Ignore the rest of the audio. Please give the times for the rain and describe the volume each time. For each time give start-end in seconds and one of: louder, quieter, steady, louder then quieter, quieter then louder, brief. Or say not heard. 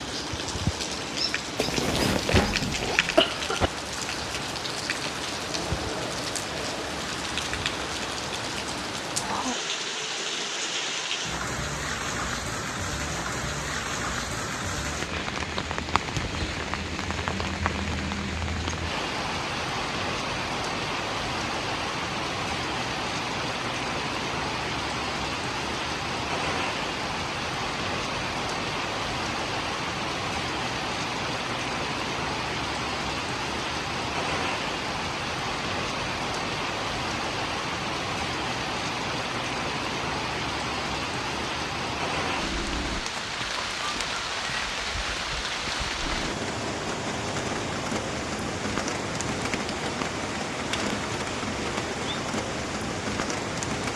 0.0-53.9 steady.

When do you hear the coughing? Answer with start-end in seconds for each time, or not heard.
2.3-3.7.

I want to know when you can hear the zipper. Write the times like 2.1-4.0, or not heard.
1.6-3.0.